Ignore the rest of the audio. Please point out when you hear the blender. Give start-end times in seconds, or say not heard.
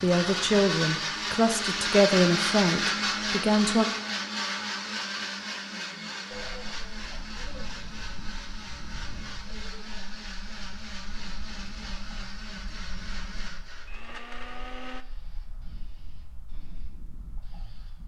0.0-15.1.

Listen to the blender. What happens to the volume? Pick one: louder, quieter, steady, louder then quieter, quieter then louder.
quieter.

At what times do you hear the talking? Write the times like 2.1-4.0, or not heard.
0.0-3.9.